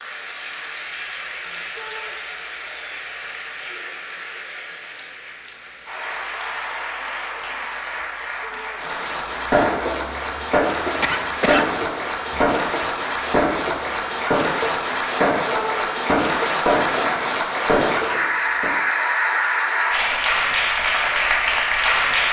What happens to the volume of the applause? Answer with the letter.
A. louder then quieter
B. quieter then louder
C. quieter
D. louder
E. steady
D.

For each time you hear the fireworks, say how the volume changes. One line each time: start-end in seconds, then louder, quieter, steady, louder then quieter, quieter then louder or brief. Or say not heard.
9.4-18.8 steady.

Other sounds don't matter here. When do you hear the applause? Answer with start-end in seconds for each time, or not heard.
0.0-22.2.